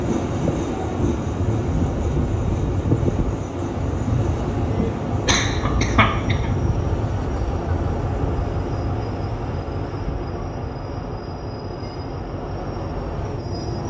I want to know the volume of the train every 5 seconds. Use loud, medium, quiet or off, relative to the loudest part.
loud, loud, medium.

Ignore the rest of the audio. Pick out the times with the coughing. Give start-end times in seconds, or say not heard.
5.2-6.5.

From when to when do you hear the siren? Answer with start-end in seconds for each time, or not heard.
not heard.